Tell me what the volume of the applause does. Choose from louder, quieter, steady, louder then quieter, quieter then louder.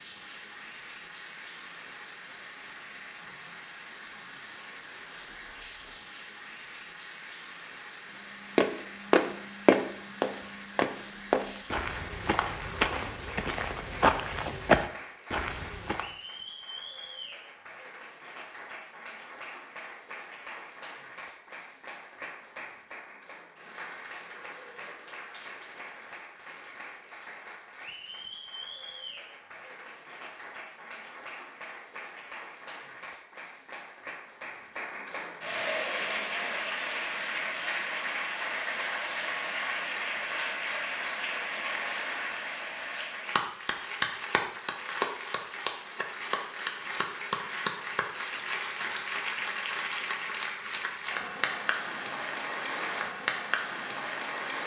louder.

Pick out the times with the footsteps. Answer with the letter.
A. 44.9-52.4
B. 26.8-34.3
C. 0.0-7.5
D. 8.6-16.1
D.